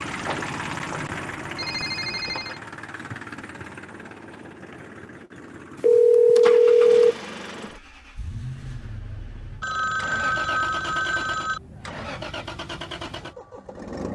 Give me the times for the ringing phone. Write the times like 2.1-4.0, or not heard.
0.1-2.6, 5.8-7.2, 9.6-11.6.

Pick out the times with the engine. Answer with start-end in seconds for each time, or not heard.
0.0-14.1.